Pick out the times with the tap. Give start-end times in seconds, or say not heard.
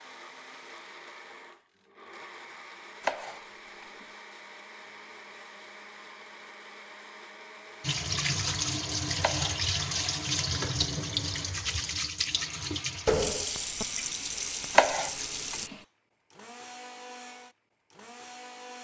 7.8-15.7.